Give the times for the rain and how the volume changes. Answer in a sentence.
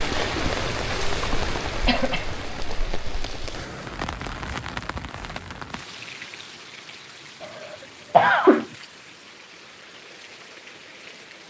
The rain can be heard from 0.0 to 11.4 s, getting quieter.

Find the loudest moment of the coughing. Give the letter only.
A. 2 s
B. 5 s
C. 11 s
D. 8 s
D.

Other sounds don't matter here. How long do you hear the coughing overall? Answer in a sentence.
You can hear the coughing for 3 seconds altogether.